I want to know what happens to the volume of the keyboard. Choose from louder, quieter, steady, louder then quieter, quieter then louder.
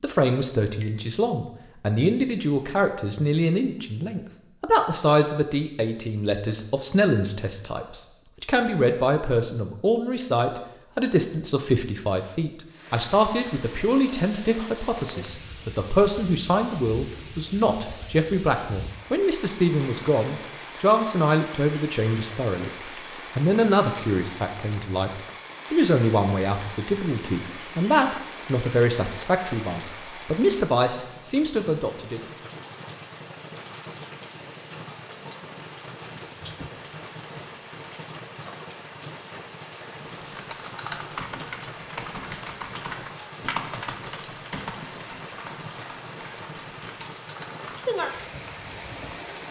quieter.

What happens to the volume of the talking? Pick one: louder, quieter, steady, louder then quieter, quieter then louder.
steady.